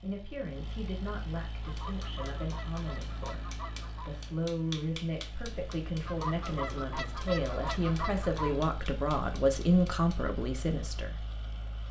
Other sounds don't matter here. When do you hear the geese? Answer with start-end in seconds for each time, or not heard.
1.6-4.1, 6.0-8.7.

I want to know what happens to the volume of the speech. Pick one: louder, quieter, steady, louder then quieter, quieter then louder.
louder.